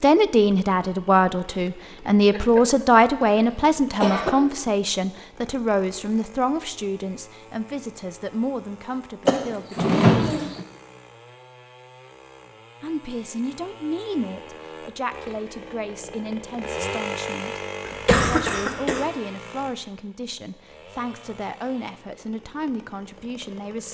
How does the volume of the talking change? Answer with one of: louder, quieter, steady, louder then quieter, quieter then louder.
quieter.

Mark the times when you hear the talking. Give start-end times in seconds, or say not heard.
0.0-10.5, 12.8-17.6, 18.2-23.8.